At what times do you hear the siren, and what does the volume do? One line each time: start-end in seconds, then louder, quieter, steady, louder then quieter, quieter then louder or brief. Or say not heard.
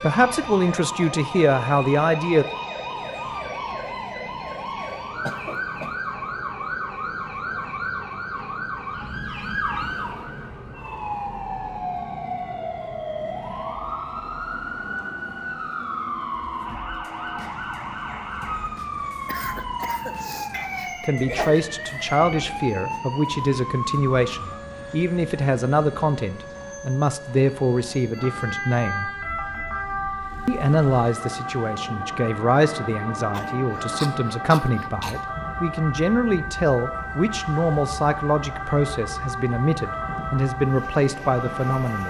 0.0-42.0 steady.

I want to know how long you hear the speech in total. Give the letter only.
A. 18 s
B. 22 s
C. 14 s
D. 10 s
B.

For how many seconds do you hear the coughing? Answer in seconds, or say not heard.
5 s.